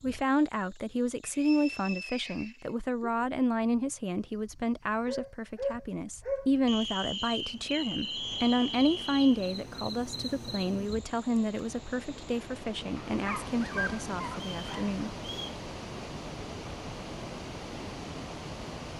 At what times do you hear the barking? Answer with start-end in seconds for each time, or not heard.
5.0-6.5, 13.1-14.9.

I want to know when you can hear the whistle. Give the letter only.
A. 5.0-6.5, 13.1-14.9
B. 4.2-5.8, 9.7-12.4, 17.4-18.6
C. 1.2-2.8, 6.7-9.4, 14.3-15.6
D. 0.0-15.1
C.